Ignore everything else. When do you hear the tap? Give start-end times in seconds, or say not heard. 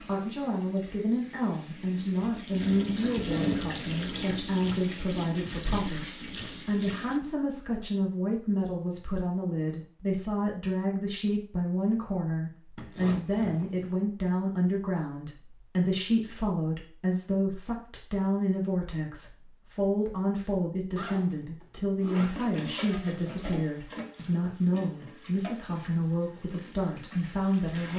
0.0-7.2, 22.1-27.9.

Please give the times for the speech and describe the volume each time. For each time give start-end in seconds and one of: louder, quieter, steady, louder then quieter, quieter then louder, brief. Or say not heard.
0.0-27.9 steady.